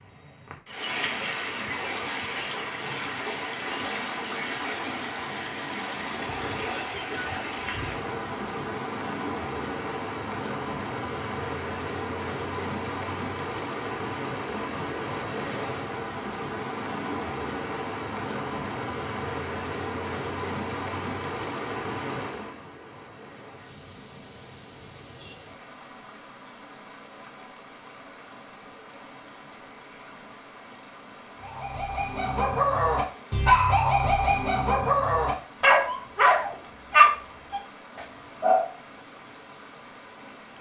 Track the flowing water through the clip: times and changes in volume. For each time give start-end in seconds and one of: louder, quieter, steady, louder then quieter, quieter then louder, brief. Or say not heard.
0.0-40.5 quieter.